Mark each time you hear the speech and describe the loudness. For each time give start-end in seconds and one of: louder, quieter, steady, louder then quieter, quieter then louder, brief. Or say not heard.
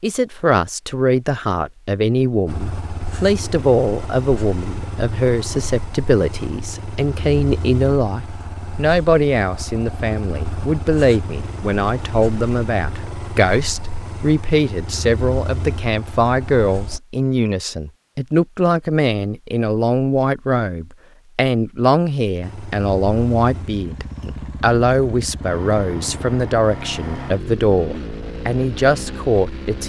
0.0-29.8 steady.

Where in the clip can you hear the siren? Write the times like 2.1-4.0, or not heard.
not heard.